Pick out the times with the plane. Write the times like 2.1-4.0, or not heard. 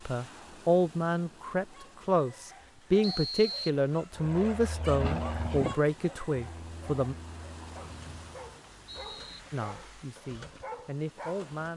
4.2-8.4.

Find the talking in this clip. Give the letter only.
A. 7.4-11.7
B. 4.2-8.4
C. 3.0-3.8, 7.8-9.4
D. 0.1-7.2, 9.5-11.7
D.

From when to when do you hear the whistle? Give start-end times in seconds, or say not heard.
3.0-3.8, 7.8-9.4.